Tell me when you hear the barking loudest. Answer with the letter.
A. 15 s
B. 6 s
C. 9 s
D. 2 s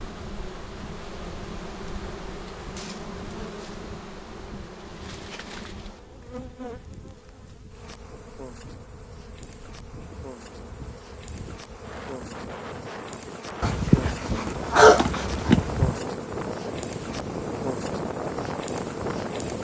A.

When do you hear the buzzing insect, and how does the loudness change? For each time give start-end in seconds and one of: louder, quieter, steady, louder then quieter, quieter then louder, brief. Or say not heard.
0.0-19.5 quieter then louder.